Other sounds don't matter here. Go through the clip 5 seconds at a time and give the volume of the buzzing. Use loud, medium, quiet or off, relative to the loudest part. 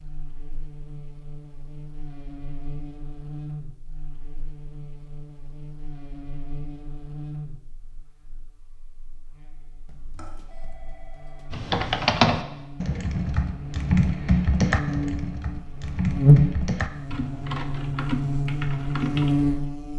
quiet, quiet, quiet, loud.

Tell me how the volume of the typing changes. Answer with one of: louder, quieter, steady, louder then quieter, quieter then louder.
quieter.